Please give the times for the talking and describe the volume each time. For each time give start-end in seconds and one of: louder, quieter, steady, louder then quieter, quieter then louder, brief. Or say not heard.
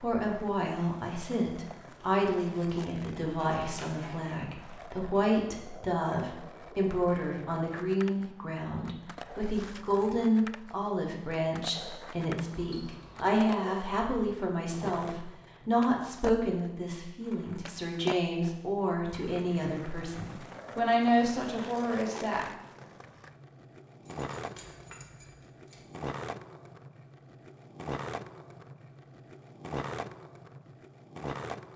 0.0-22.4 steady.